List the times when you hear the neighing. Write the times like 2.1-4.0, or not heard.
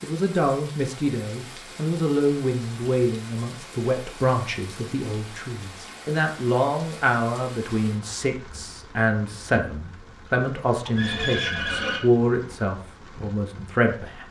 10.9-12.1.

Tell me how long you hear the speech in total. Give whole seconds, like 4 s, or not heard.
14 s.